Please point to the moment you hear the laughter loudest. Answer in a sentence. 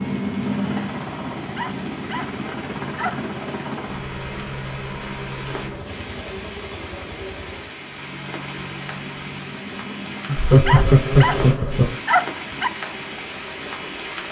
The loudest moment of the laughter is at 11 seconds.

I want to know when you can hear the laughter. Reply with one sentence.
The laughter can be heard from 10.2 to 11.9 s.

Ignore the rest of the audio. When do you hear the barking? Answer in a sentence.
The barking can be heard from 1.4 to 3.2 s and from 10.4 to 12.7 s.